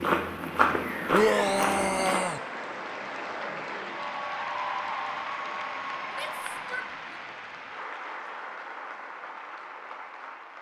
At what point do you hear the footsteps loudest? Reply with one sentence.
The loudest moment of the footsteps is at 1 second.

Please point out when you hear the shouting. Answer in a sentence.
The shouting can be heard from 1.1 to 2.4 s and from 6.1 to 7.2 s.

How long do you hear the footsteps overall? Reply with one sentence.
The footsteps can be heard for 2 seconds in total.